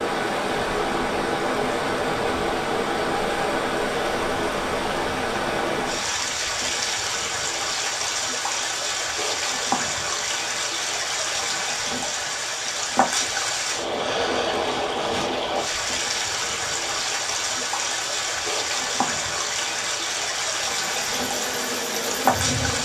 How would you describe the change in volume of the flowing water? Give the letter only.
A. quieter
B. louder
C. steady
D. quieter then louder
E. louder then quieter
C.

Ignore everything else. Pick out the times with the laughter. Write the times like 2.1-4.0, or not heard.
not heard.